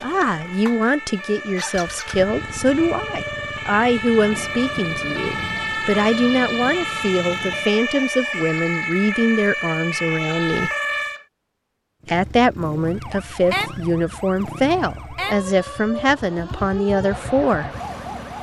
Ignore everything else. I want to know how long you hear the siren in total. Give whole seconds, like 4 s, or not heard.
17 s.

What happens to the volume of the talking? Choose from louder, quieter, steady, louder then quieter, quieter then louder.
steady.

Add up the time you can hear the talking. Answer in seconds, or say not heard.
16 s.